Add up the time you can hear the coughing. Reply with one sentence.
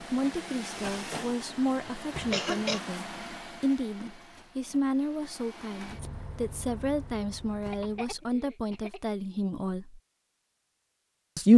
The coughing can be heard for 2 seconds in total.